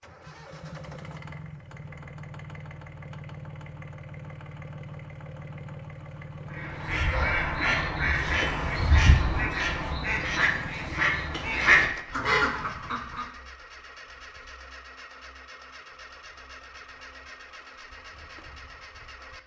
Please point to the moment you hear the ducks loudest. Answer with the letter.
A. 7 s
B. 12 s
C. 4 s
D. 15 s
B.